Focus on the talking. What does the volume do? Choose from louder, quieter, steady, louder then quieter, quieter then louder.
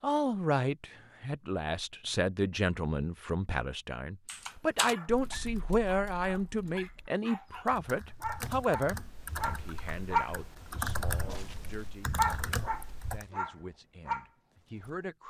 quieter.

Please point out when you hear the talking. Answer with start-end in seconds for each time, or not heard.
0.0-15.2.